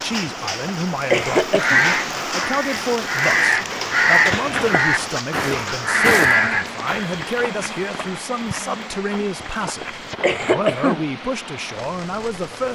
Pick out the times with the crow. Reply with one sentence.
The crow can be heard from 1.5 to 6.9 s.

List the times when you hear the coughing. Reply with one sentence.
The coughing can be heard from 0.2 to 1.8 s, from 4.3 to 4.9 s and from 9.4 to 11.1 s.